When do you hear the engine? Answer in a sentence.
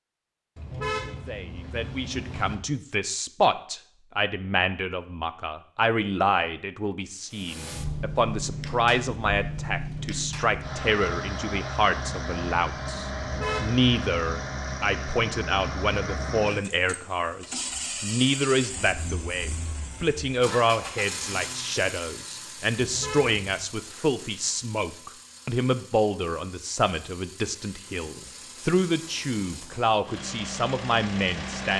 You can hear the engine from 7.3 to 31.7 s.